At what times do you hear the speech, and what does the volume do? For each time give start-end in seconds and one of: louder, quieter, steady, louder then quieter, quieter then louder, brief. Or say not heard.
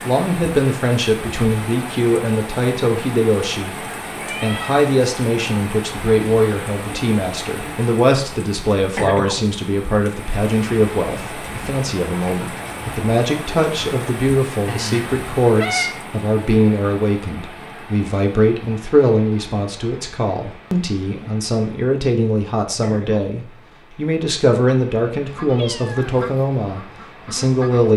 0.0-27.9 steady.